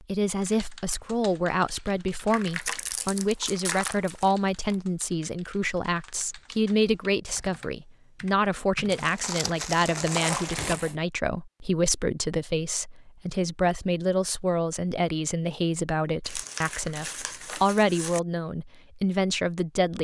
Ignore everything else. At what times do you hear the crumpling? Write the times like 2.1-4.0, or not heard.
2.3-4.8, 8.9-10.9, 16.2-18.2.